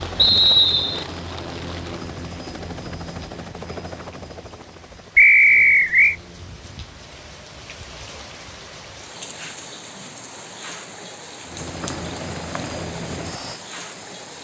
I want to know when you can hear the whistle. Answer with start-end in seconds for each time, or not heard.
0.1-1.1, 5.2-6.2, 11.8-12.8.